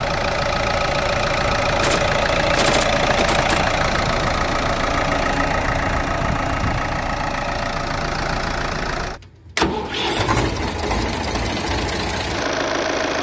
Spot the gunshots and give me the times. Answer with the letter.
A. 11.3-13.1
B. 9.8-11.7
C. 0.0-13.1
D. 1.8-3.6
D.